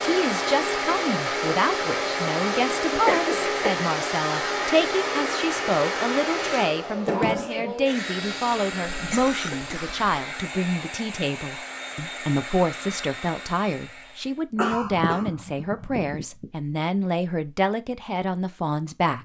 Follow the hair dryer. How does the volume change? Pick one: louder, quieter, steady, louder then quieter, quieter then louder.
quieter.